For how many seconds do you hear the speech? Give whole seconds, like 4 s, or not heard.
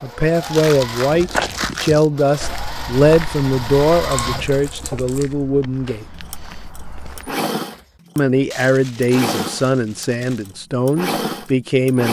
10 s.